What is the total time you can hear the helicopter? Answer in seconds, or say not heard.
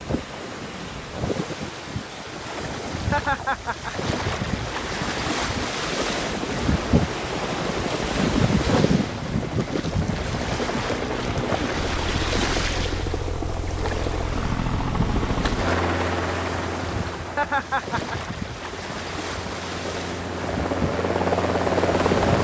18 s.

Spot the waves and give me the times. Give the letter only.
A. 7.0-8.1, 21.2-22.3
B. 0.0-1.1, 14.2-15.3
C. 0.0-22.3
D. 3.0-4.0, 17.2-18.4
C.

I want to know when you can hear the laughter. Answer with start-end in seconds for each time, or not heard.
3.0-4.0, 17.2-18.4.